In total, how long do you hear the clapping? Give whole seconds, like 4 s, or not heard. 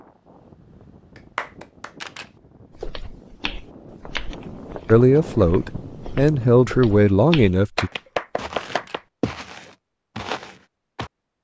2 s.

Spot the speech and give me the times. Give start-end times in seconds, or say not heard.
4.8-7.9.